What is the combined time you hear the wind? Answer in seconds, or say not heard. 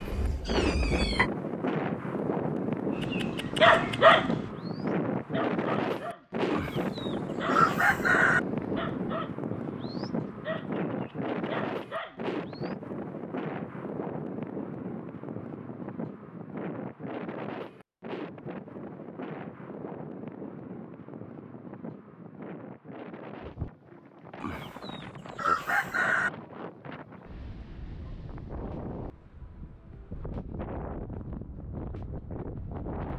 33 s.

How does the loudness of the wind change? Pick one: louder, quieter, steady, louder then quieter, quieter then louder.
quieter.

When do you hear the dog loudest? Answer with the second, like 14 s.
4 s.